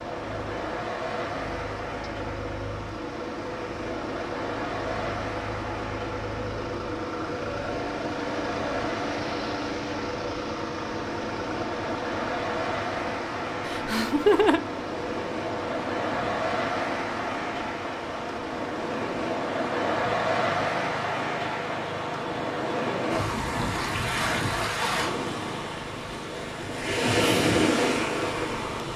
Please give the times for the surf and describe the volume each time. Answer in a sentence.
You can hear the surf from 0.0 to 28.9 s, getting louder.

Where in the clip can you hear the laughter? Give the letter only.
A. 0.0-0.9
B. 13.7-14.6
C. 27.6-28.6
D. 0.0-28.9
B.